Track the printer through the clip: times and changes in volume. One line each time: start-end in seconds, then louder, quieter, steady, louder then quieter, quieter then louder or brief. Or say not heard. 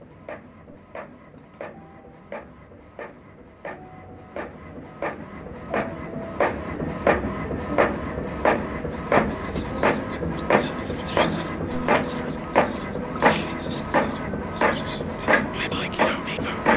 0.0-16.7 louder.